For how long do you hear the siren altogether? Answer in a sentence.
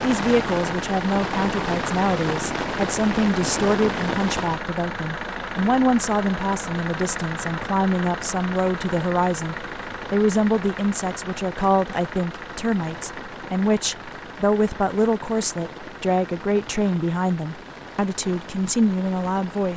You can't hear the siren here.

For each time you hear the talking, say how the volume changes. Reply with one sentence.
You can hear the talking from 0.0 to 19.7 s, at a steady volume.